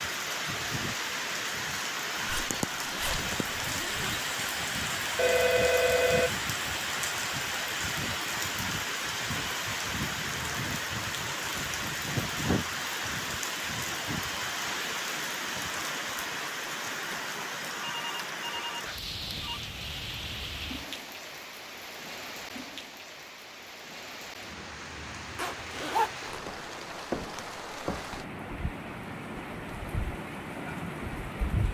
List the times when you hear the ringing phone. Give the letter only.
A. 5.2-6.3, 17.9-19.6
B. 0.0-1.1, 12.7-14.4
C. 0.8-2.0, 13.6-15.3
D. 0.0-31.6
A.